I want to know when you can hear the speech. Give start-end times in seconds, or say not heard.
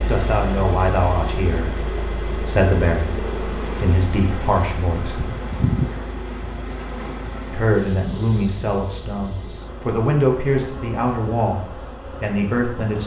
0.0-5.3, 7.5-13.0.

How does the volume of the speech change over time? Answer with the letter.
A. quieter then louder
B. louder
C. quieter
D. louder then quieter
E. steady
E.